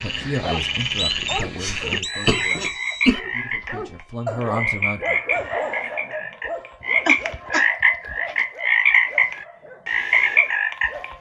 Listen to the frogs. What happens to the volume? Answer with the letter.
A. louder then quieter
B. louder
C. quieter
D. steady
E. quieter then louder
B.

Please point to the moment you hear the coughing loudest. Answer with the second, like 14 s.
3 s.